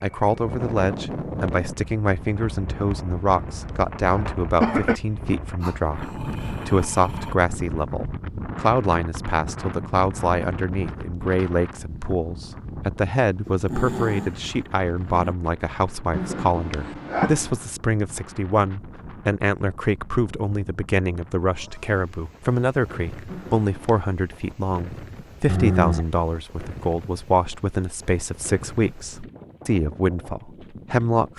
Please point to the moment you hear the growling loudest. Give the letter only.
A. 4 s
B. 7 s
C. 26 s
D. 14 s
C.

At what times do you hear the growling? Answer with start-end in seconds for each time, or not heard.
5.6-7.3, 13.4-15.3, 25.4-26.1.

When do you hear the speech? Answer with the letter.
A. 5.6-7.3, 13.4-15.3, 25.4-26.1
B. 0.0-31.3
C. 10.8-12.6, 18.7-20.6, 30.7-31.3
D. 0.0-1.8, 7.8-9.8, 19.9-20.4
B.